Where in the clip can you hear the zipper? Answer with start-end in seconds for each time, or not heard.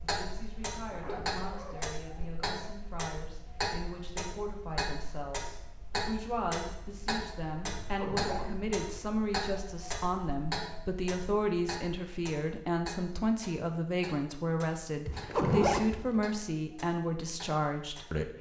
0.9-2.3, 7.8-8.7, 15.1-16.2.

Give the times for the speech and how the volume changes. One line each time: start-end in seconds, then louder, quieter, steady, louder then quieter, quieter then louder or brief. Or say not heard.
0.0-18.3 louder.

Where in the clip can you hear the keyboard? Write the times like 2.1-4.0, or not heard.
not heard.